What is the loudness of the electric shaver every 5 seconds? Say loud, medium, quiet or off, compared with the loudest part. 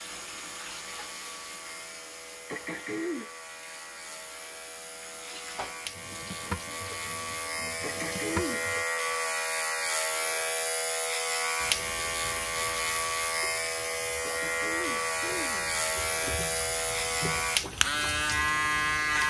quiet, medium, loud, loud.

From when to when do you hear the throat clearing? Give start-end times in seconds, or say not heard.
2.5-3.3, 7.8-8.7, 14.2-15.8.